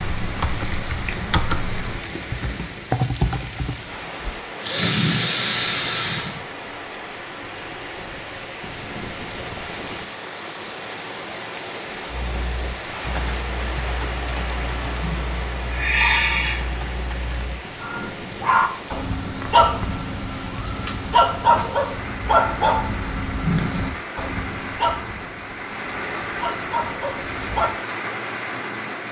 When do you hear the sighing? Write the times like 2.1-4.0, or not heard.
4.0-6.4, 15.0-16.8, 23.4-23.8.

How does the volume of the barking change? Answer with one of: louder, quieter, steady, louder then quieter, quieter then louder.
quieter.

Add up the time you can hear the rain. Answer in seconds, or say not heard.
29 s.